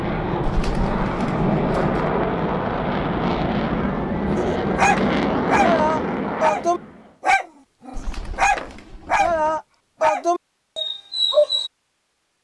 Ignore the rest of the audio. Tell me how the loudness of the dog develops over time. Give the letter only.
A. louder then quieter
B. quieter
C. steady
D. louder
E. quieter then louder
C.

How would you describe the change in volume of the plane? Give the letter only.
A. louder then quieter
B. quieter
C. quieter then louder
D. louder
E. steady
E.